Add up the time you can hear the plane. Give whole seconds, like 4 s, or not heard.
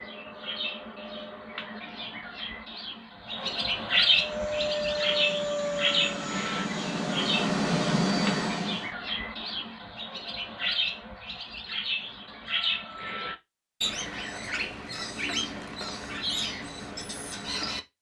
5 s.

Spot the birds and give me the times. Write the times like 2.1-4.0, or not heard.
0.0-17.8.